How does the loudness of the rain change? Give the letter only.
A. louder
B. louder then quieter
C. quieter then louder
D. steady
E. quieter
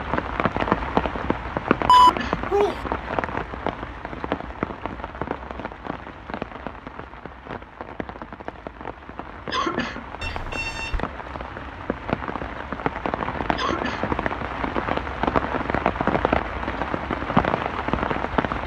C.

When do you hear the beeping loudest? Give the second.
2 s.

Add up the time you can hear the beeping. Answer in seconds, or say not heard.
2 s.